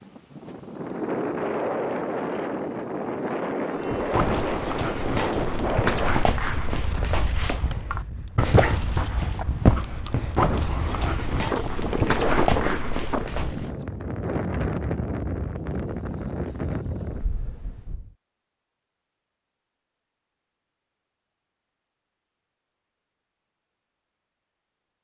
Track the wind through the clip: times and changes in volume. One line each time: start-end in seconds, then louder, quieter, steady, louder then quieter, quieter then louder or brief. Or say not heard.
0.0-18.1 quieter then louder.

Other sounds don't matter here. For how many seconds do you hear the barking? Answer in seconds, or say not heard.
10 s.